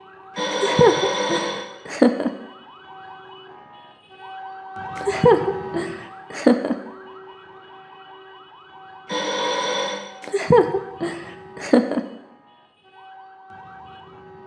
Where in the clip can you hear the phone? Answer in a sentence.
The phone can be heard from 0.3 to 1.6 s and from 9.1 to 10.0 s.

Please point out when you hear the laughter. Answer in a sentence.
The laughter can be heard from 0.5 to 2.3 s, from 5.0 to 6.8 s and from 10.2 to 12.0 s.